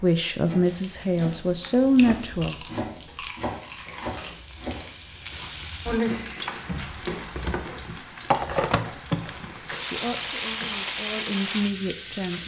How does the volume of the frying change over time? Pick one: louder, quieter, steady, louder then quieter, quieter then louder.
louder.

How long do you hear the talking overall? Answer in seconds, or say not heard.
5 s.